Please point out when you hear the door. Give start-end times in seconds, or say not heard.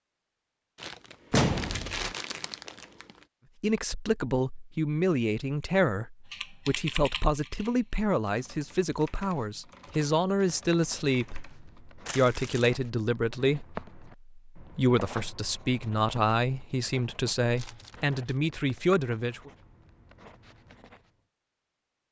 1.3-2.1.